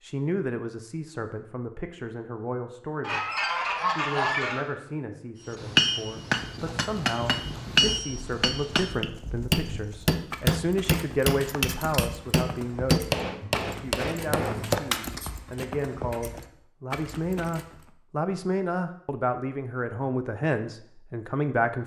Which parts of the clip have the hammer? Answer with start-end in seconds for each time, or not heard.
5.5-15.1.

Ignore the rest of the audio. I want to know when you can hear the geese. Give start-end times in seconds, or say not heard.
3.0-4.7.